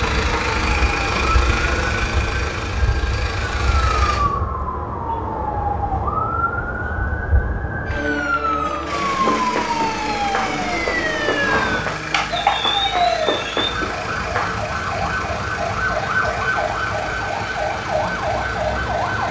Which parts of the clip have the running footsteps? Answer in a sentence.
The running footsteps can be heard from 9.1 to 14.6 s.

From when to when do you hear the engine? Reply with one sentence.
You can hear the engine from 0.0 to 4.2 s and from 8.8 to 19.2 s.